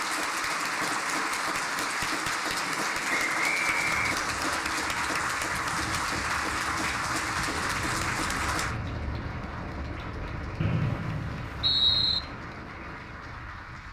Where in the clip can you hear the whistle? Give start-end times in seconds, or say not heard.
3.0-4.6, 10.6-12.2.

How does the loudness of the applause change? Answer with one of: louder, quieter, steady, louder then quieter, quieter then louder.
quieter.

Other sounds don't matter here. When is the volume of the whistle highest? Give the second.
12 s.